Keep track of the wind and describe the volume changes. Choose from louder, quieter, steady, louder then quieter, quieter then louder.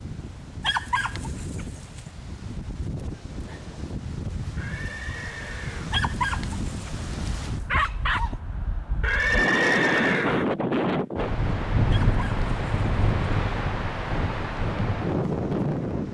louder.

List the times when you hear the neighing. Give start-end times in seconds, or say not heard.
4.5-6.0, 9.0-10.4.